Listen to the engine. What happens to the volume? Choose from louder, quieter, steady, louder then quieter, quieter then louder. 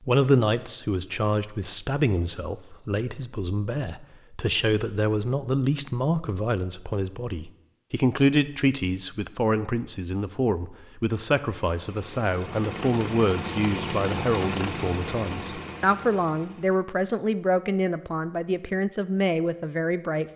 louder then quieter.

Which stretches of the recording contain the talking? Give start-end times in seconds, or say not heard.
0.1-20.2.